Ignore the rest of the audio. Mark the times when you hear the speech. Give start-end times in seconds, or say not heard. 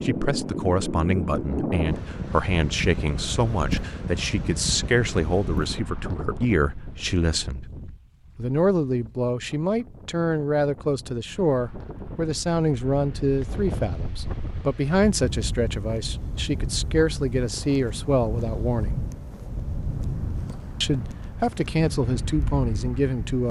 0.0-7.7, 8.3-18.9, 20.8-23.4.